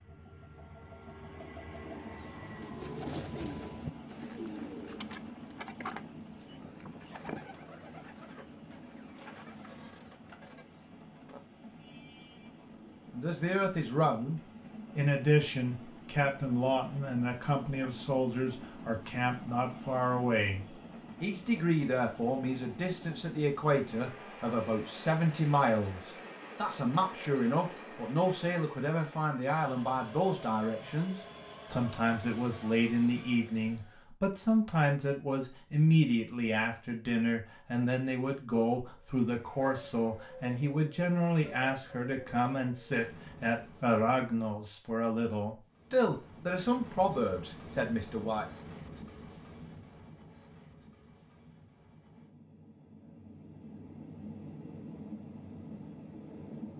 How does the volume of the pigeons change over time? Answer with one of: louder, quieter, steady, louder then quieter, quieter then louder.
quieter.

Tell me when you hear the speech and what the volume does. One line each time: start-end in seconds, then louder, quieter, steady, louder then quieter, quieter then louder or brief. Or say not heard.
13.1-48.5 steady.